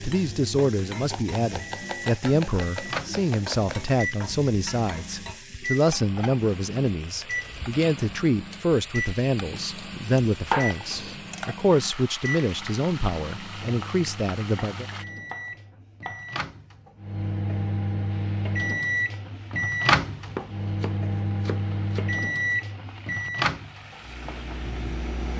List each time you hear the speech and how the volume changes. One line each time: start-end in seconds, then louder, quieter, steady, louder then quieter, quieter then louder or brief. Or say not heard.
0.0-14.8 steady.